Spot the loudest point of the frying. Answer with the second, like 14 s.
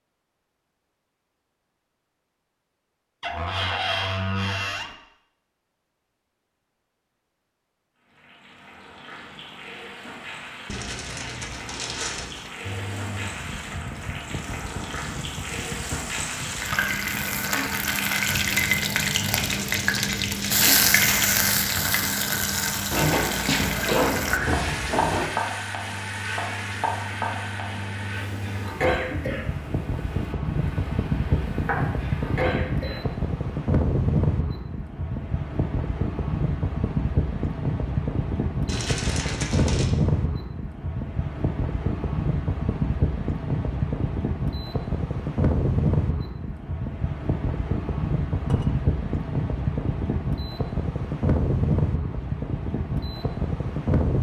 21 s.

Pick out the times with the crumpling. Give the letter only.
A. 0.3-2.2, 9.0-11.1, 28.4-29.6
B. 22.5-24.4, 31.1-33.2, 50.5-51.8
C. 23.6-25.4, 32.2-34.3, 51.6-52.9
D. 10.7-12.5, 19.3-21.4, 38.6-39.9
D.